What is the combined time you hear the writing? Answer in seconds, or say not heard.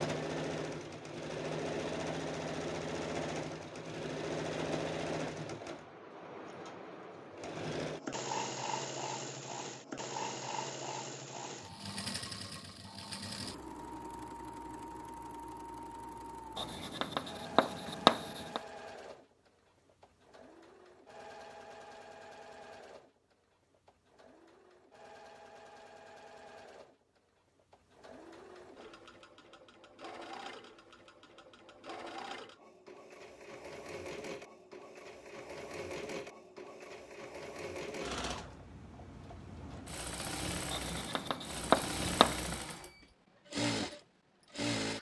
4 s.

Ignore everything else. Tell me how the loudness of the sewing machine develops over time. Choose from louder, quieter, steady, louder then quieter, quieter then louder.
quieter then louder.